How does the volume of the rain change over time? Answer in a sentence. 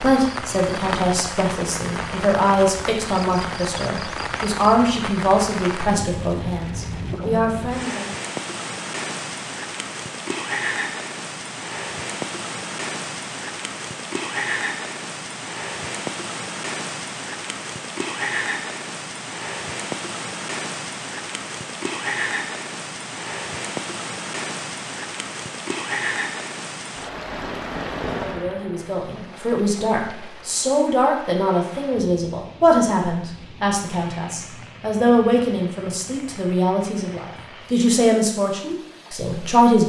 The volume of the rain goes down.